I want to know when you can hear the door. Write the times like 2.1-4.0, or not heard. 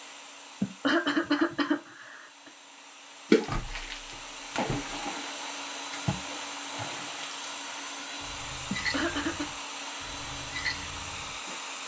3.5-5.0.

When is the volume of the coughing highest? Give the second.
1 s.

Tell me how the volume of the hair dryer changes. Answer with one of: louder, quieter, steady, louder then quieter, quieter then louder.
louder.